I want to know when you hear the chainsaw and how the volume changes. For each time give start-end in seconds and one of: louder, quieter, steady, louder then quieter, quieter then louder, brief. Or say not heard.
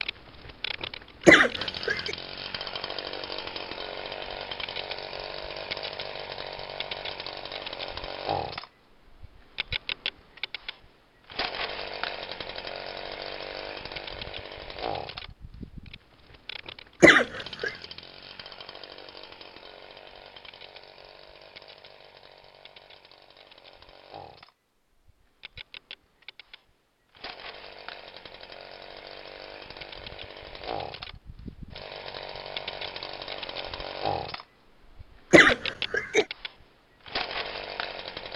0.0-38.3 quieter then louder.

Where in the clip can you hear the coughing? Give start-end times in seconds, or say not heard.
1.2-2.1, 17.0-17.7, 35.3-36.2.